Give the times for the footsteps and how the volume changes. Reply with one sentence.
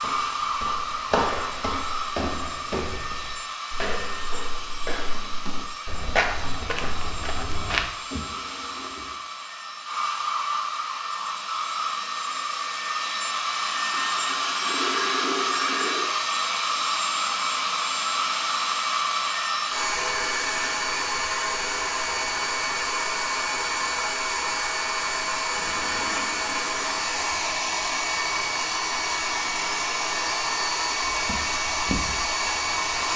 The footsteps can be heard from 0.0 to 7.9 s, getting quieter then louder; and briefly from 31.1 to 33.1 s.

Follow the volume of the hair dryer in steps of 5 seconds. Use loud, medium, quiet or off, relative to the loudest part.
medium, medium, loud, loud, loud, loud, loud.